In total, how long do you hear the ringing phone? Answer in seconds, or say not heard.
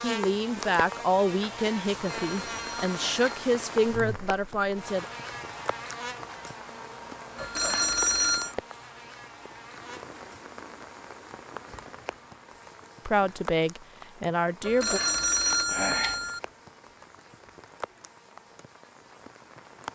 4 s.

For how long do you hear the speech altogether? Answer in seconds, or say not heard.
7 s.